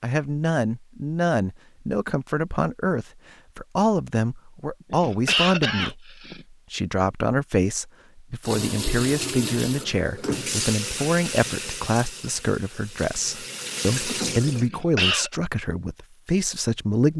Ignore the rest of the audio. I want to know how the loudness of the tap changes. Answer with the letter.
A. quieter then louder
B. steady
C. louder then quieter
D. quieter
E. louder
A.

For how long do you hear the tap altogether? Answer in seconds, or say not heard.
6 s.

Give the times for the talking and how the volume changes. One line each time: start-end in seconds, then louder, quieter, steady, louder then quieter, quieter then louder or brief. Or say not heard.
0.0-17.1 steady.